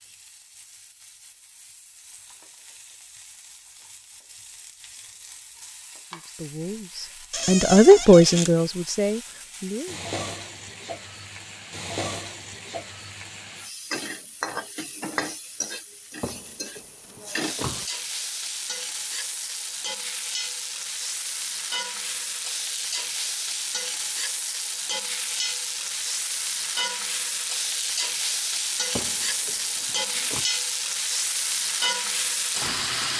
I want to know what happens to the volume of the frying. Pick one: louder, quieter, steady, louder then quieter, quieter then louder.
louder.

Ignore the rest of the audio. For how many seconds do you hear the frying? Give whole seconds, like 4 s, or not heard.
33 s.